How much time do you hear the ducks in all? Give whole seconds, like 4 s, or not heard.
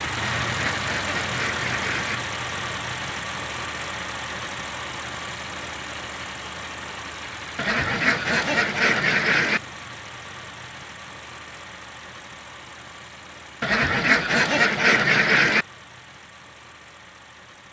6 s.